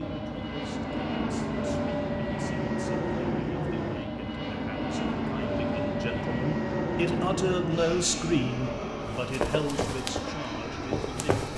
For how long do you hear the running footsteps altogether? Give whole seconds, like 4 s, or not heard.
2 s.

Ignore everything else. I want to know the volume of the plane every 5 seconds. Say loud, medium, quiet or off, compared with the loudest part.
loud, loud, medium.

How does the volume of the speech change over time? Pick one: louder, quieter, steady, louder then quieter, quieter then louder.
louder then quieter.